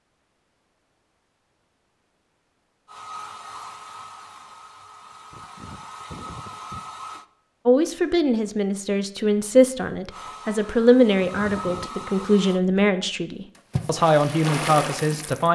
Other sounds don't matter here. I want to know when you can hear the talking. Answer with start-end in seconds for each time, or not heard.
7.7-15.4.